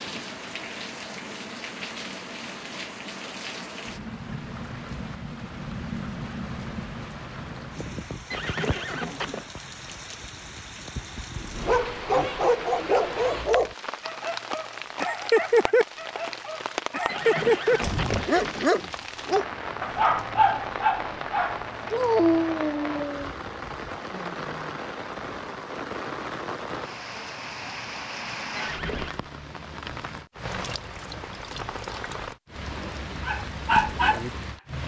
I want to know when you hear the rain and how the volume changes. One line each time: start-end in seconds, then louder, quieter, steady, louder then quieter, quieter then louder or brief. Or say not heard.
0.0-34.8 steady.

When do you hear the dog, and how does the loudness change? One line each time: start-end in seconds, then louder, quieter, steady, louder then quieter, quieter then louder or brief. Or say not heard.
11.3-23.3 steady
33.2-34.3 brief.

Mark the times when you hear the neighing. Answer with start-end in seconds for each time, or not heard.
8.3-9.4, 17.1-18.7, 28.6-29.2.